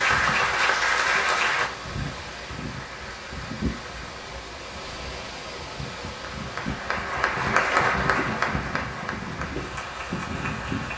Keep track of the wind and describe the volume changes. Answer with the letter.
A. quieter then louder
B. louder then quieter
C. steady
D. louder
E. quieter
C.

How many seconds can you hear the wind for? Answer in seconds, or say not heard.
11 s.